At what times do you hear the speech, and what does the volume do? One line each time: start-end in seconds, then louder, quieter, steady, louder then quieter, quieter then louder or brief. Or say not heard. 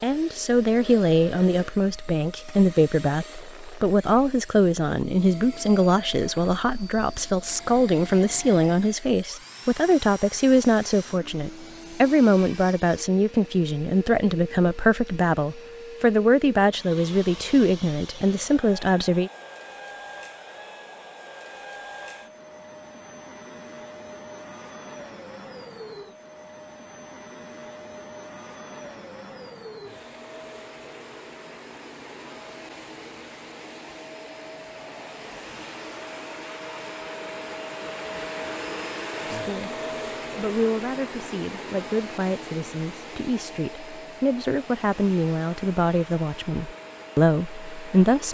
0.0-19.3 steady
39.2-39.7 brief
40.4-48.2 louder.